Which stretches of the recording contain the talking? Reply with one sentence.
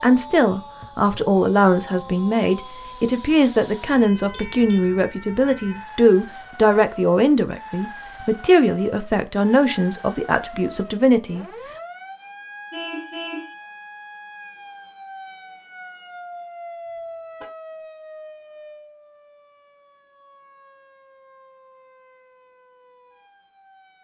You can hear the talking from 0.0 to 11.4 s.